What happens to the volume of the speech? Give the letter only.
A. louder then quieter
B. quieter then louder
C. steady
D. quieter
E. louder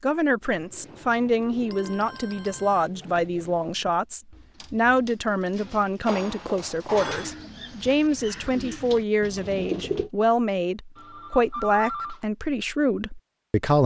C.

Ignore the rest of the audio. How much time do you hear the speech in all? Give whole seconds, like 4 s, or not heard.
14 s.